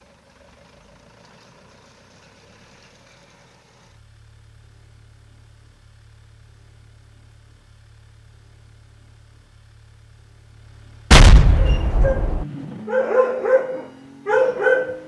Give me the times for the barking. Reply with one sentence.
The barking can be heard from 11.6 to 15.0 s.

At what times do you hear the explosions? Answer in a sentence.
You can hear the explosions from 11.1 to 12.4 s.